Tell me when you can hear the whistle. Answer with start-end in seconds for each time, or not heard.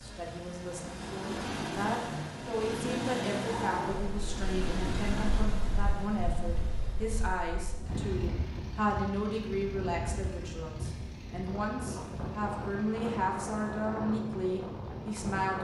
not heard.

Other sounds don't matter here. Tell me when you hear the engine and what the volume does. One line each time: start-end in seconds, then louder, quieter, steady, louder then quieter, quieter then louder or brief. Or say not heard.
0.0-15.2 quieter.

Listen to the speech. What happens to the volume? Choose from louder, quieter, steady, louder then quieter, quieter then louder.
steady.